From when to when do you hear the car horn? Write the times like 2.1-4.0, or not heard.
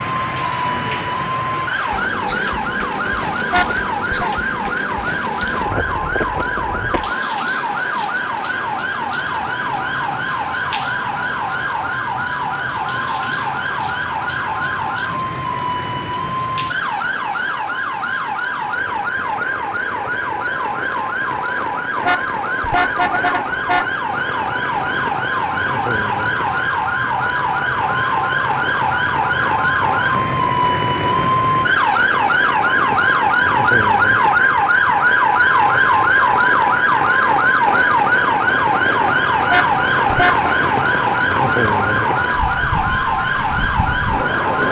3.5-4.3, 22.1-23.9, 39.5-40.5.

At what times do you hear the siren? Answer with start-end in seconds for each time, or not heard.
0.0-44.6.